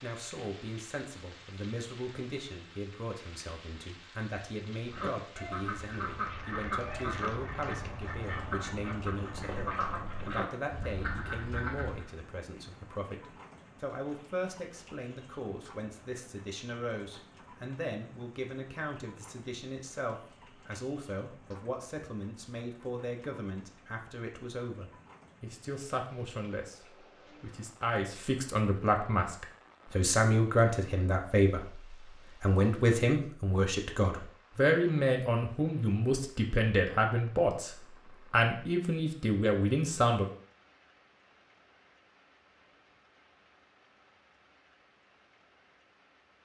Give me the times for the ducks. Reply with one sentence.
You can hear the ducks from 4.8 to 12.1 s.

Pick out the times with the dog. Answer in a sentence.
The dog can't be heard in this clip.